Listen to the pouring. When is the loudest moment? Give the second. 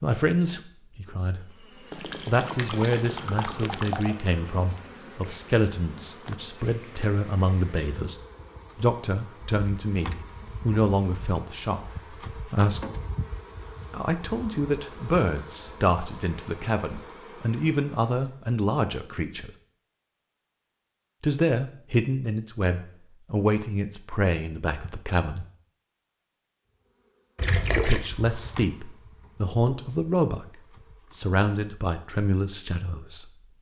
28 s.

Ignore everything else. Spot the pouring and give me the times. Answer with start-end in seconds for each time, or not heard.
1.9-4.2, 27.4-28.1.